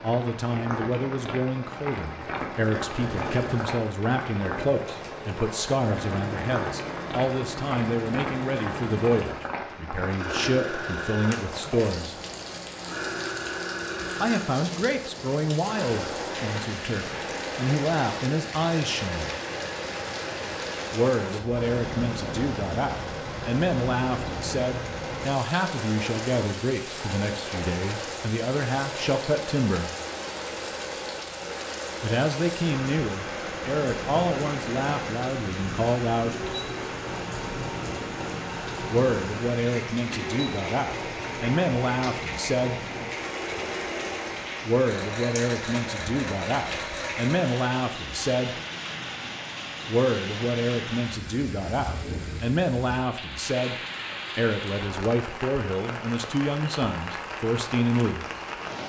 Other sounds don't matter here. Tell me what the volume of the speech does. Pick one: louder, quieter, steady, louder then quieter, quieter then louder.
steady.